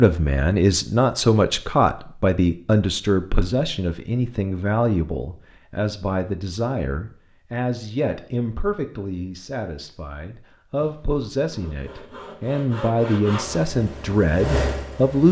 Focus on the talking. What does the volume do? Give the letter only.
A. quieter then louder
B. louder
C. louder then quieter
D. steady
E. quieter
A.